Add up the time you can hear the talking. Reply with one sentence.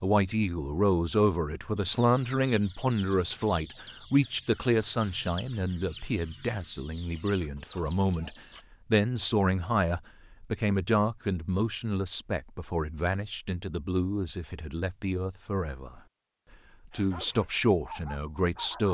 The talking can be heard for 18 seconds in total.